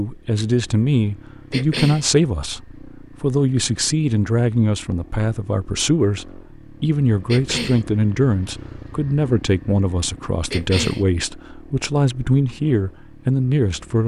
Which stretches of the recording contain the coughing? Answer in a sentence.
You can hear the coughing from 1.5 to 2.0 s, from 7.2 to 7.8 s and from 10.5 to 11.1 s.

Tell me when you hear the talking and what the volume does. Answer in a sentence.
The talking can be heard from 0.0 to 14.0 s, at a steady volume.